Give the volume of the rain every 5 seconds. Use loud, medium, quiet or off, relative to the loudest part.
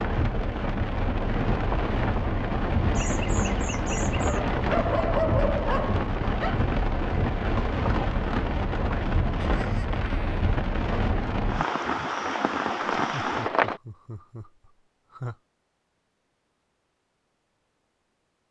loud, loud, loud, off.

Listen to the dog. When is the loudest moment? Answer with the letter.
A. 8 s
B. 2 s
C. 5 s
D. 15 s
C.